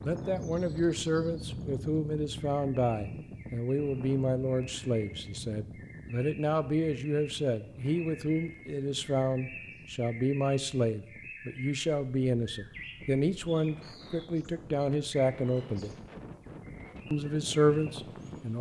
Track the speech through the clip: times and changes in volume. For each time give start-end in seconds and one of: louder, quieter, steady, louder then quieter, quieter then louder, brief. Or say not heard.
0.0-15.9 steady
17.1-18.5 brief.